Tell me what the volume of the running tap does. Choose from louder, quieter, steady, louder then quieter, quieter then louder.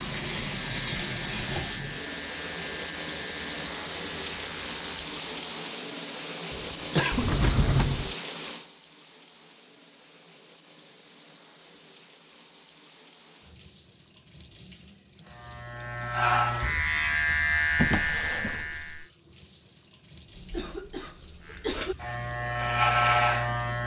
quieter.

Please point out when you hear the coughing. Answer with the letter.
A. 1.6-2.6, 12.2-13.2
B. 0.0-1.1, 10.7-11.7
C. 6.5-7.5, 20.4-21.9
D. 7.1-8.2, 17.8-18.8
C.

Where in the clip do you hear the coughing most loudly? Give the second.
7 s.